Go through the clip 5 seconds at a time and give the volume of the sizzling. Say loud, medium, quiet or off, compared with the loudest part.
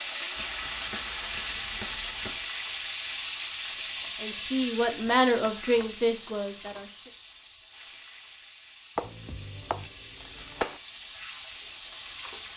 loud, medium, medium.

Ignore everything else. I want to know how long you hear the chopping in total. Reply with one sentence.
You can hear the chopping for 6 seconds altogether.